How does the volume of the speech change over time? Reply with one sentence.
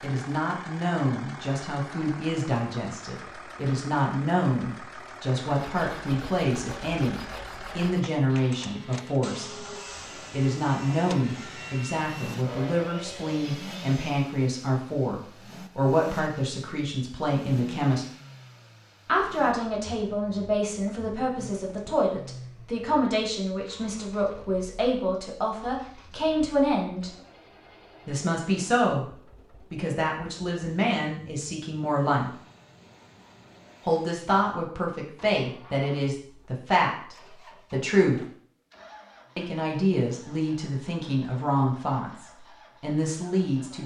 The loudness of the speech stays about the same.